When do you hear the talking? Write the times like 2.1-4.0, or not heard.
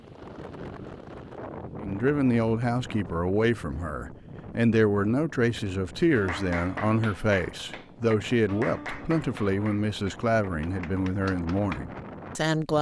1.8-12.7.